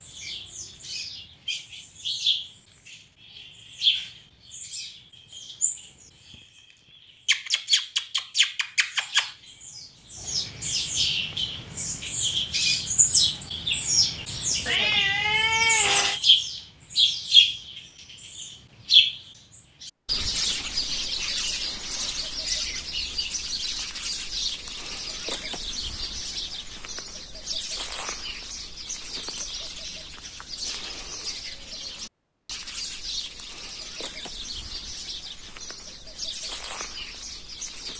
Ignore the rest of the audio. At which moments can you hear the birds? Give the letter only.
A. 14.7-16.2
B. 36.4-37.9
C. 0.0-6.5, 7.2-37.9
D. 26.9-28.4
C.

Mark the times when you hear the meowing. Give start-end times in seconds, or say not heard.
14.7-16.2.